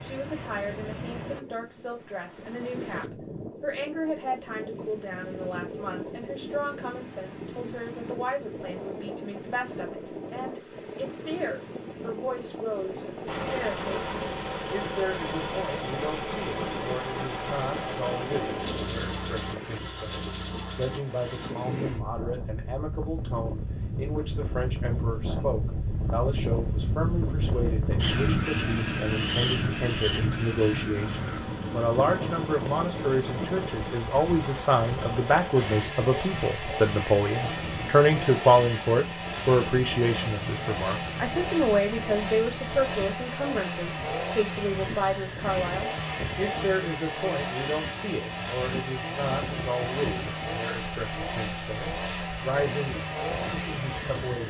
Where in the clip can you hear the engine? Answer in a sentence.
You can hear the engine from 13.2 to 21.6 s and from 30.9 to 54.4 s.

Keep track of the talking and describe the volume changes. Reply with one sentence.
The volume of the talking goes up, then down.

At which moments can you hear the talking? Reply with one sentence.
The talking can be heard from 0.0 to 13.8 s and from 14.7 to 54.4 s.